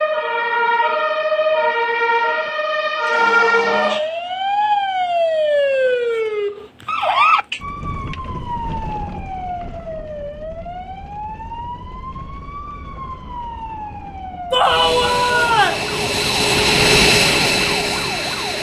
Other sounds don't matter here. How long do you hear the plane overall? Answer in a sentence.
The plane can be heard for 4 seconds in total.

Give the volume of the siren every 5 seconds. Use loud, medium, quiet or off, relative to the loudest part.
loud, loud, quiet, quiet.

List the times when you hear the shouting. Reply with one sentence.
You can hear the shouting from 14.5 to 15.8 s.